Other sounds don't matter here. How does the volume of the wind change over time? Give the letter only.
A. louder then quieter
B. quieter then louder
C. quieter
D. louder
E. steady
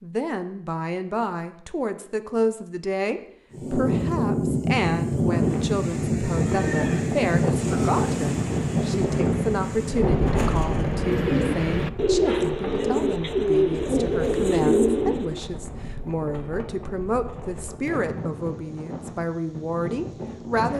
C.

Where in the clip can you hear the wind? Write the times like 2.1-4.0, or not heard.
3.5-20.7.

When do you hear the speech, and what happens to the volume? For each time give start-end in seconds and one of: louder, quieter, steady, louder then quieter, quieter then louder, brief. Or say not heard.
0.0-20.7 steady.